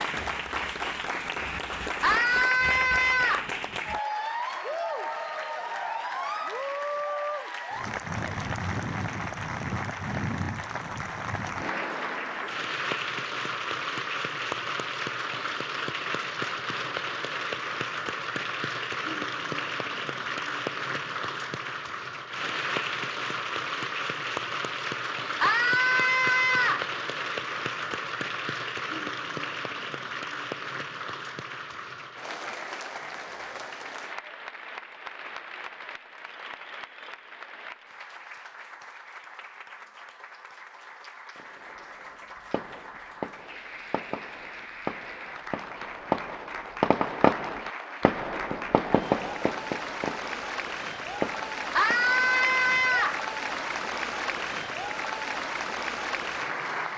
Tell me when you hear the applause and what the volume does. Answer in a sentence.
You can hear the applause from 0.0 to 56.9 s, getting quieter then louder.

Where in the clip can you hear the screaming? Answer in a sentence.
The screaming can be heard from 2.0 to 3.5 s, from 25.4 to 26.9 s and from 51.8 to 53.2 s.